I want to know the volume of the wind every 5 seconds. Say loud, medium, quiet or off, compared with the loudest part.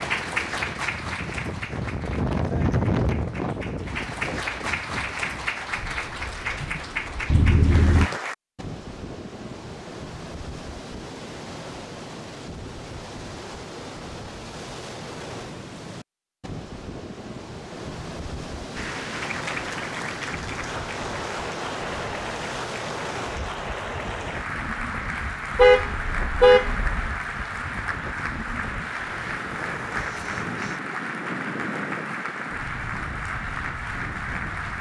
loud, medium, medium, medium, medium, medium, medium.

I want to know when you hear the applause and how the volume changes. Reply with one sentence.
You can hear the applause from 0.0 to 8.3 s, getting quieter then louder; and from 18.8 to 34.7 s, at a steady volume.